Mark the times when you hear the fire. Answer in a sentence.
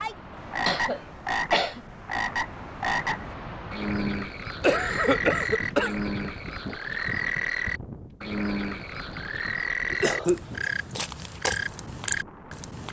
You can't hear the fire here.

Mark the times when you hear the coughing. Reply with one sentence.
The coughing can be heard from 0.7 to 1.8 s, from 4.6 to 6.0 s and from 9.9 to 10.7 s.